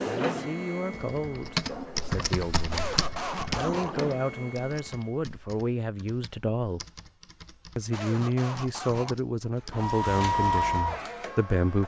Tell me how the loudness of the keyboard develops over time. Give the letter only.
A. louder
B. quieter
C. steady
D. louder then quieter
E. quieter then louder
B.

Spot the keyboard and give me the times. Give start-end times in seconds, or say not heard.
0.9-9.9.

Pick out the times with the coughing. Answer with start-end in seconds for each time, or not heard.
2.7-4.0, 7.9-9.2.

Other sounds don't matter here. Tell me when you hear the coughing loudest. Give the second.
3 s.